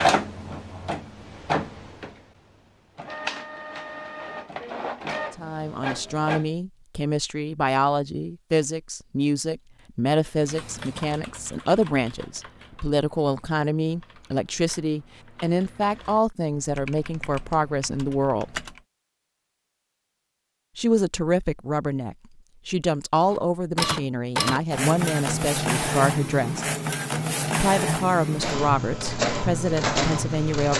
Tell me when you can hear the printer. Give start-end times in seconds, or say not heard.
0.0-6.5, 23.3-30.7.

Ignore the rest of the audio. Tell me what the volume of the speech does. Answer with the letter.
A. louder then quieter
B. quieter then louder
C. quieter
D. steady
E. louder
D.